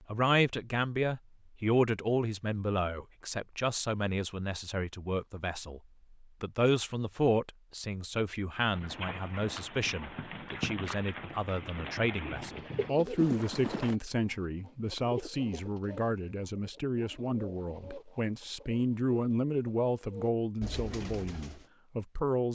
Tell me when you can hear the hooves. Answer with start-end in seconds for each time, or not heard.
8.7-13.9.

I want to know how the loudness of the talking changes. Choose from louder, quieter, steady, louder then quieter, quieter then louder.
steady.